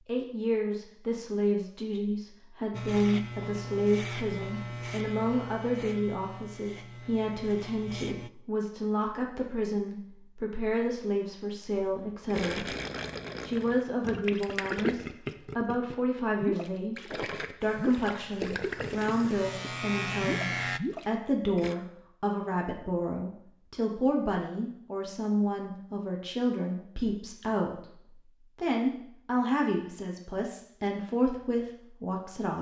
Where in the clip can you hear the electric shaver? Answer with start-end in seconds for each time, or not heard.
2.7-8.3, 17.6-20.8.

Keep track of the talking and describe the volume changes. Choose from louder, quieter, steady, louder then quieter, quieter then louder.
steady.